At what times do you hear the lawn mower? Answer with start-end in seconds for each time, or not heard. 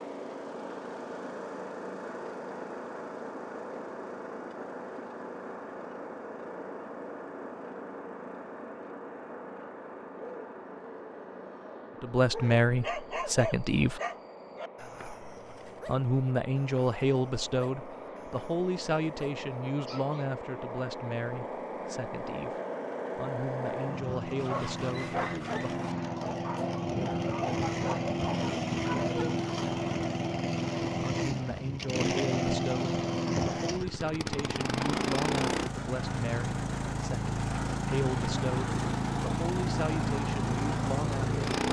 0.0-41.6.